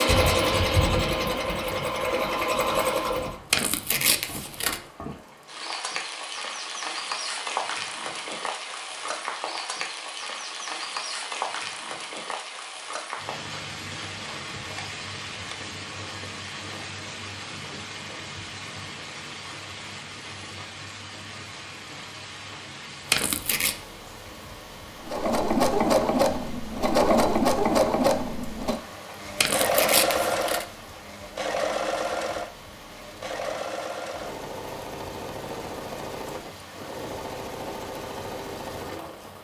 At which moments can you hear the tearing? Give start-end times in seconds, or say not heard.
3.5-4.8, 23.1-23.8, 29.4-30.6.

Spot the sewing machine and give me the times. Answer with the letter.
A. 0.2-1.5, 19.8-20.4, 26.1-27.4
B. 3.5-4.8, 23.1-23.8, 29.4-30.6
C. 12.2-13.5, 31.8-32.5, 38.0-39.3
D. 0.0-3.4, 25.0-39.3
D.